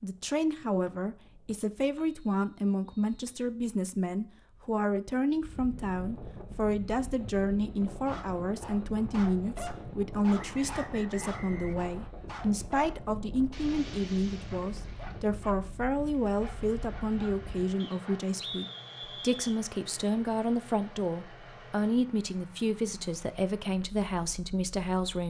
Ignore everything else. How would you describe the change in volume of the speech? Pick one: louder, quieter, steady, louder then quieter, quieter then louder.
steady.